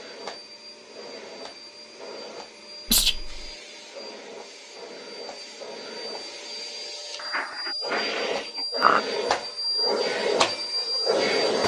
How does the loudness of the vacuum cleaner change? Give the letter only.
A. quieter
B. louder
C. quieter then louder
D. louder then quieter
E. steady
B.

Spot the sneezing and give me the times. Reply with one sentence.
The sneezing can be heard from 2.9 to 3.5 s and from 7.2 to 9.0 s.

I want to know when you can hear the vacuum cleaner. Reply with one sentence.
You can hear the vacuum cleaner from 0.0 to 11.6 s.